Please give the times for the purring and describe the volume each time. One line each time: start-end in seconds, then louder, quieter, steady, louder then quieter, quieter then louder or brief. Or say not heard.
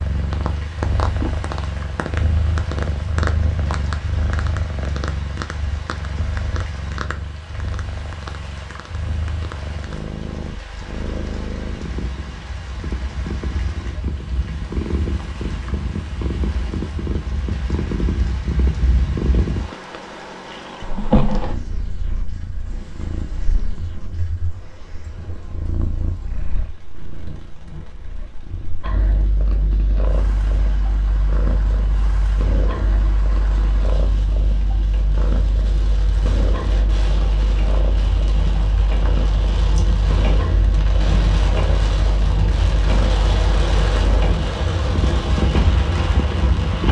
0.0-46.8 steady.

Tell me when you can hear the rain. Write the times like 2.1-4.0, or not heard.
0.0-46.8.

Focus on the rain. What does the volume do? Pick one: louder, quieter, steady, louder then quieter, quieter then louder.
louder.